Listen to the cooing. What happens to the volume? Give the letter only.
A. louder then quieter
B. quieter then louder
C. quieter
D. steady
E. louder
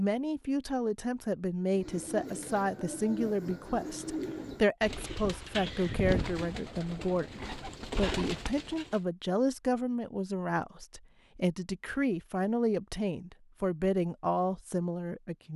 D.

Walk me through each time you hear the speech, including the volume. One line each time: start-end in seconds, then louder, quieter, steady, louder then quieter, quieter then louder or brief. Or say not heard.
0.0-15.5 steady.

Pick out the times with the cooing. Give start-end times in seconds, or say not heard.
1.7-9.0.